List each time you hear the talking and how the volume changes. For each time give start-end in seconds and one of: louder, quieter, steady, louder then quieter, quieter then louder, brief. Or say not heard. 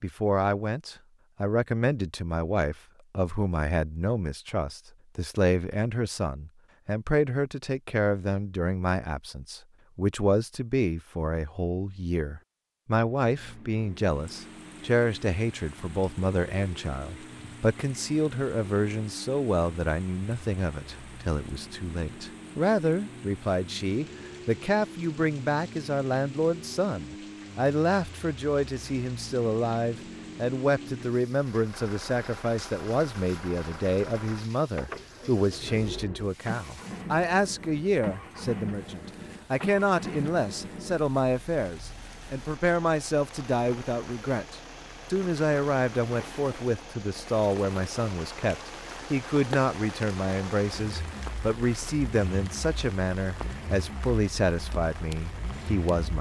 0.0-56.1 steady.